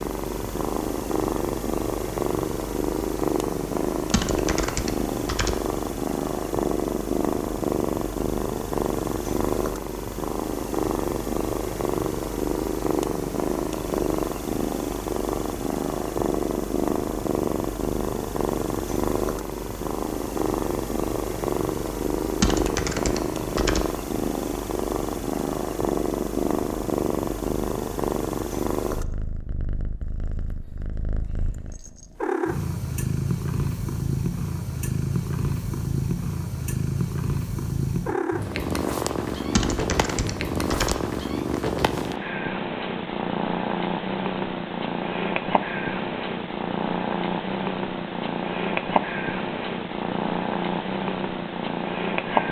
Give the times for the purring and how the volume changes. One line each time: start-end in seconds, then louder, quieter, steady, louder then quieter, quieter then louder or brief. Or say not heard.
0.0-52.4 steady.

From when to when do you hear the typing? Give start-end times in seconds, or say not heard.
4.1-5.5, 22.4-23.9, 39.5-41.0.